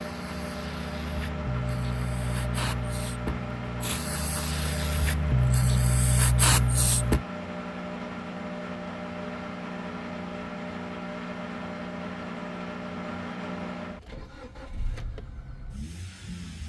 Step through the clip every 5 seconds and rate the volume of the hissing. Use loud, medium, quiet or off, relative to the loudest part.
medium, loud, off, off.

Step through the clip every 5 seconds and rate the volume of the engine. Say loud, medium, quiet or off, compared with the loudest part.
loud, loud, loud, medium.